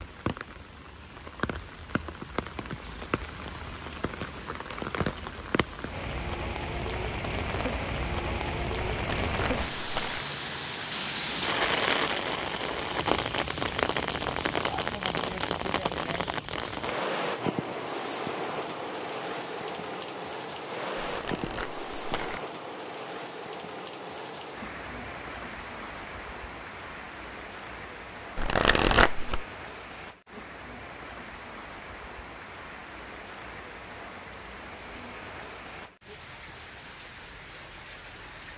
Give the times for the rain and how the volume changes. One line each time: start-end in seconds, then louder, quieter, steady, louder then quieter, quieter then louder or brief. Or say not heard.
0.0-38.5 louder then quieter.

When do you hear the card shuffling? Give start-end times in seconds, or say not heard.
8.8-10.2, 21.0-22.4, 28.4-29.4.